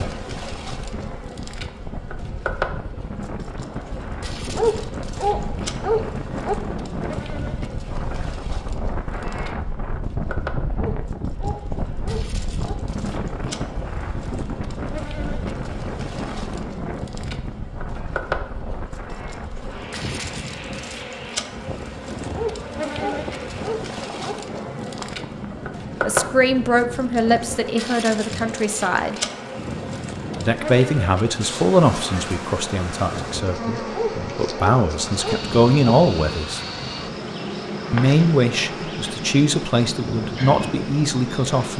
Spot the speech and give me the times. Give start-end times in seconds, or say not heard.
26.0-29.2, 30.4-36.6, 37.9-41.7.